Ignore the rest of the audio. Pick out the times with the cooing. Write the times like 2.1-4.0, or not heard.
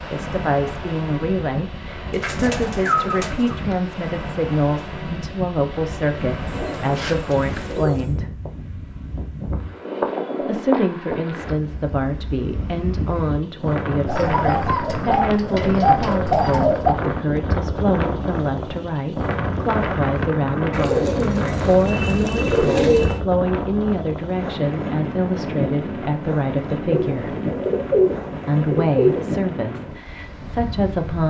2.2-3.5, 6.5-8.2, 14.1-16.9, 20.7-23.2, 26.9-29.3.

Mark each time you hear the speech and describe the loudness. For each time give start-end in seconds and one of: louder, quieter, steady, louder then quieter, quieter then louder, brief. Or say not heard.
0.1-8.3 steady
10.4-27.4 steady
28.4-31.2 brief.